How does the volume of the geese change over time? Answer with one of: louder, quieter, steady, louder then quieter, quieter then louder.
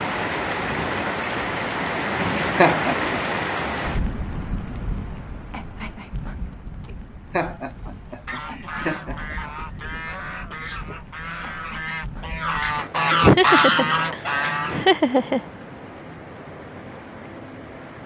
louder.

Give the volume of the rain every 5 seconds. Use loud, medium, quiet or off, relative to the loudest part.
loud, quiet, quiet, quiet.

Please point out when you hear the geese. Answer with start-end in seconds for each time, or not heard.
7.8-14.9.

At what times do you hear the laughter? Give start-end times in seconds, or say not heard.
2.5-3.1, 7.3-9.3, 13.2-15.4.